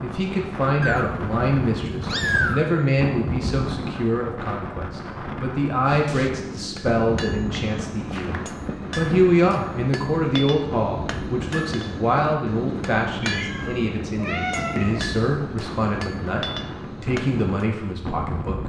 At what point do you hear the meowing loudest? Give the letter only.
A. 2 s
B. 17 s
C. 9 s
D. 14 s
A.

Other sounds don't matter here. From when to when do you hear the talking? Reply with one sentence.
The talking can be heard from 0.0 to 18.6 s.